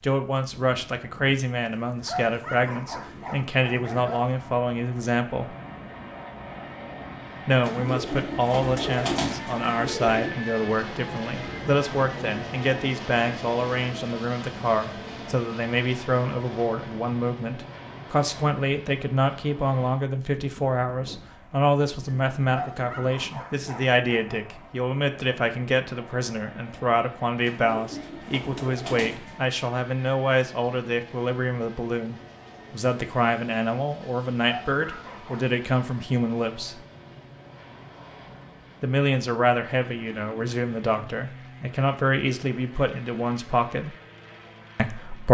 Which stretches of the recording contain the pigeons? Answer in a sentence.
You can hear the pigeons from 7.6 to 10.3 s and from 27.4 to 29.4 s.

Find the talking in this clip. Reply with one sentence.
The talking can be heard from 0.0 to 5.5 s, from 7.5 to 36.8 s, from 38.8 to 44.0 s and from 44.8 to 45.3 s.